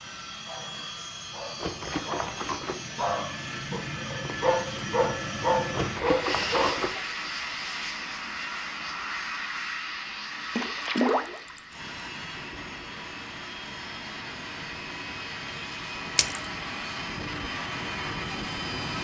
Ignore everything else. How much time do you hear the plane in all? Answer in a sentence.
You can hear the plane for 19 seconds altogether.